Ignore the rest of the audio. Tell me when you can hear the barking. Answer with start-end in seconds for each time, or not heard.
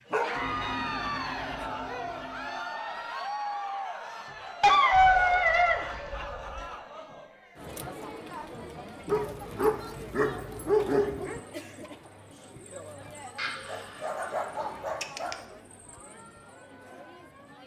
0.1-1.6, 4.6-6.2, 9.1-11.4, 13.7-15.4.